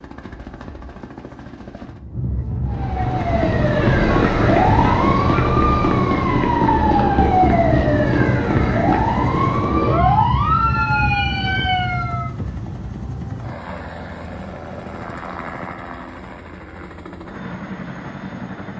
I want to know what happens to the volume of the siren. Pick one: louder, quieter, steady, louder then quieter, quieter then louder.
steady.